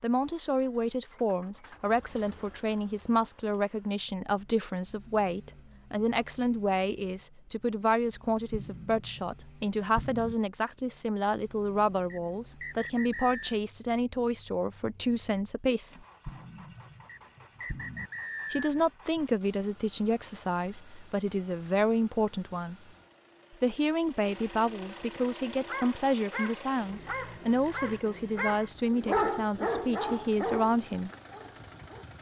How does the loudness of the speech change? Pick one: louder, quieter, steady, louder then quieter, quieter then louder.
steady.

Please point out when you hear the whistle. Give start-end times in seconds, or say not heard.
12.1-13.6, 17.1-18.7.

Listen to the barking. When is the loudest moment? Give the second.
29 s.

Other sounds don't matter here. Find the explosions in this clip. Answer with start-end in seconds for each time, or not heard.
8.5-9.3, 9.9-10.3, 16.2-18.1.